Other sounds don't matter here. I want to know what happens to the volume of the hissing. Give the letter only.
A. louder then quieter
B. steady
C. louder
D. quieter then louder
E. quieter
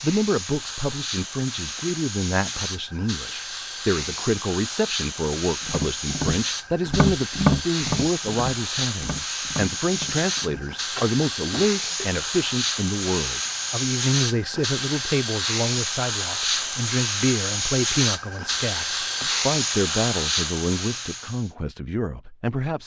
C.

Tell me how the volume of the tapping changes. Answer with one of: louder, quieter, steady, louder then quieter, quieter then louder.
quieter.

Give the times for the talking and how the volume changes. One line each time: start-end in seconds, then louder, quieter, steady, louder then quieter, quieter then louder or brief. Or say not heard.
0.0-22.8 steady.